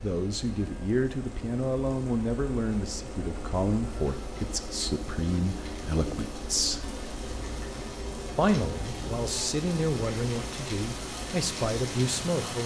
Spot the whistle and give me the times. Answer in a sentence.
You can't hear the whistle here.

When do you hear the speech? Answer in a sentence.
The speech can be heard from 0.0 to 6.8 s and from 8.3 to 12.6 s.